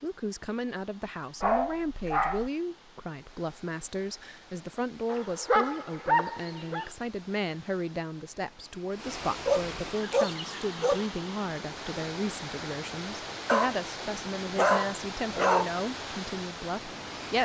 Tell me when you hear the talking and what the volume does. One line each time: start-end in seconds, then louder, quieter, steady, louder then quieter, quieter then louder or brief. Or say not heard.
0.0-17.4 steady.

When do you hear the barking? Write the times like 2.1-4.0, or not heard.
1.4-2.5, 5.1-6.9, 9.4-11.1, 13.4-15.7.